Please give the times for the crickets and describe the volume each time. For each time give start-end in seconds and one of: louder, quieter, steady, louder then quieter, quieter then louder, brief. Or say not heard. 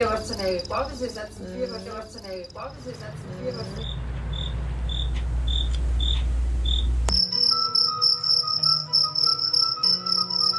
0.0-10.5 quieter then louder.